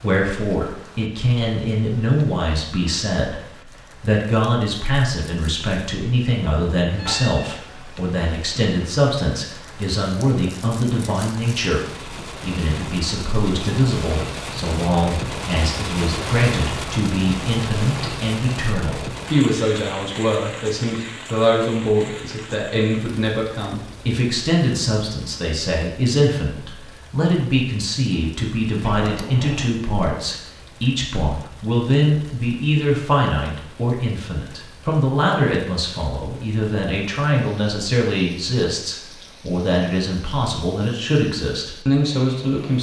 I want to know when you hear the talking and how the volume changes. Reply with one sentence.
The talking can be heard from 0.0 to 42.7 s, at a steady volume.